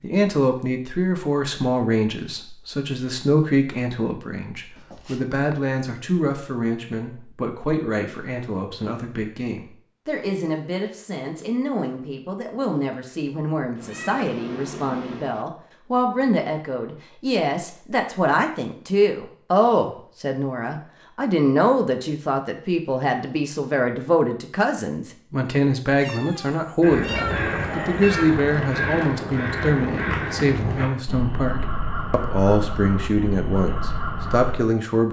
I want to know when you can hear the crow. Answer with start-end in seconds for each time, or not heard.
26.8-34.5.